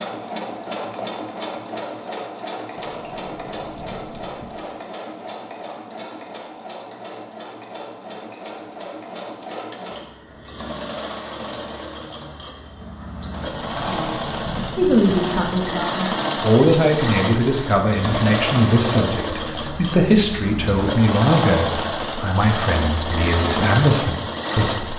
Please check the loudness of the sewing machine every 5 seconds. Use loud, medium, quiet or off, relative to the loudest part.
medium, medium, medium, loud, loud.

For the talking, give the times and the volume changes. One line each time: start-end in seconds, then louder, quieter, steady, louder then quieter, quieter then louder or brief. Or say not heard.
14.8-24.9 steady.